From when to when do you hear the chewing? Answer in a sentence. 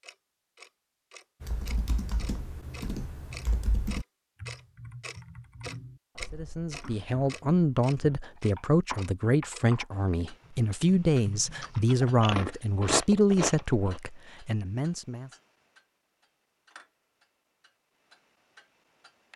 You can hear the chewing from 11.6 to 14.0 s.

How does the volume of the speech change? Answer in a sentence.
The loudness of the speech stays about the same.